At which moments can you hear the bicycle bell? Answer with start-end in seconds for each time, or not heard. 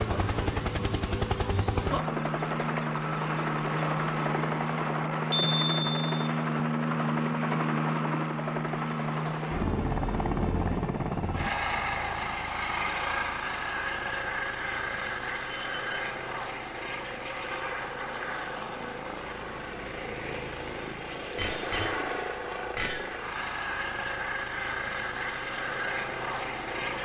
5.3-6.0, 15.5-16.1, 21.4-23.1.